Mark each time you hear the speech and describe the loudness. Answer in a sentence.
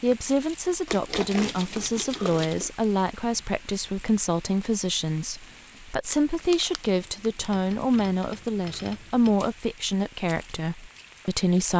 The speech can be heard from 0.0 to 11.7 s, at a steady volume.